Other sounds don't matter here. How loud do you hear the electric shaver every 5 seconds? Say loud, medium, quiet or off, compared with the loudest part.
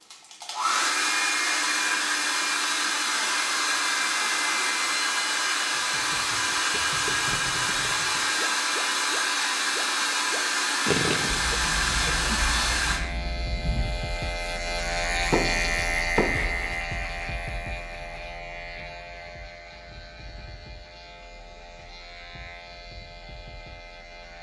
off, off, loud, loud, quiet.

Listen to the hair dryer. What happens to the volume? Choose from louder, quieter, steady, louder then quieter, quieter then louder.
steady.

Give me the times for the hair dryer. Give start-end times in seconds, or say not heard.
0.1-13.0.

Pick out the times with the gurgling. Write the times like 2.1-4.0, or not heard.
5.7-11.4.